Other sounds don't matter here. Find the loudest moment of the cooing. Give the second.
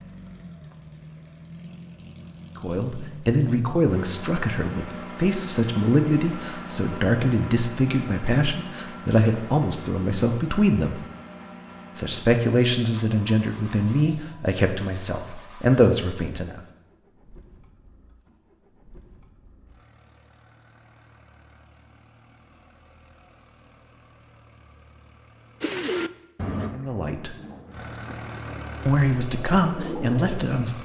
26 s.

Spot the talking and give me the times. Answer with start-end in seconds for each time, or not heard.
2.5-11.0, 11.9-16.6, 26.7-27.3, 28.9-30.8.